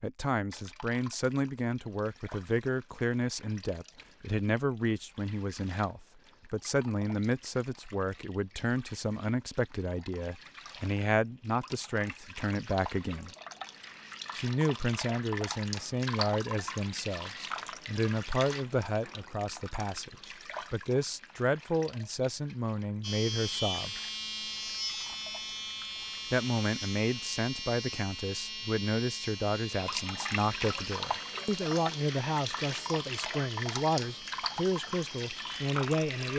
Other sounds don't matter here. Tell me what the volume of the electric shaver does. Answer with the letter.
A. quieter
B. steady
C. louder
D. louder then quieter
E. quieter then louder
A.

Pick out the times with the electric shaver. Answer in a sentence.
You can hear the electric shaver from 23.0 to 36.3 s.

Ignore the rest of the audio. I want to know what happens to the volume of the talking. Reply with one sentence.
The loudness of the talking stays about the same.